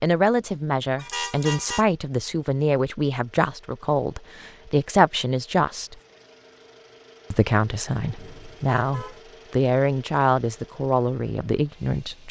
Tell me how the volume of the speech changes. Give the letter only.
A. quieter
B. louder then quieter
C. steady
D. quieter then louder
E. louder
C.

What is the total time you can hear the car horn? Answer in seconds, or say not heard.
2 s.